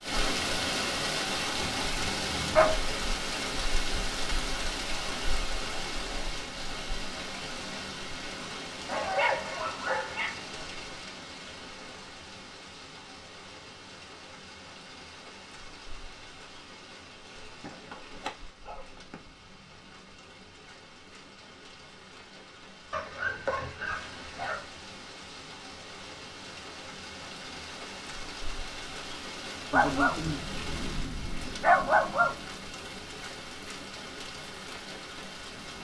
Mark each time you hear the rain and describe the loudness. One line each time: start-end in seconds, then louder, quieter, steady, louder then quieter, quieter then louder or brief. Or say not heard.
0.0-35.7 quieter then louder.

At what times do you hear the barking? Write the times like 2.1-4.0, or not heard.
1.6-3.0, 8.8-10.4, 17.6-19.1, 22.9-24.6, 29.7-32.4.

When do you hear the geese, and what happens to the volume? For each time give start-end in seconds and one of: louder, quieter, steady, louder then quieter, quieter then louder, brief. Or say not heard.
not heard.